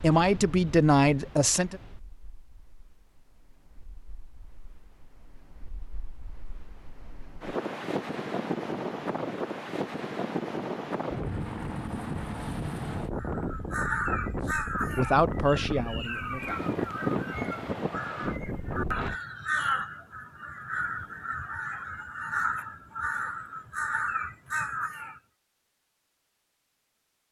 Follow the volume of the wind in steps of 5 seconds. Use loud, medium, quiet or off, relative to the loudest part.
quiet, loud, loud, loud, off, off.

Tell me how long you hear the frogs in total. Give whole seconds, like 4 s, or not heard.
not heard.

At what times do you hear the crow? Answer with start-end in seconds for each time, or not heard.
13.2-25.2.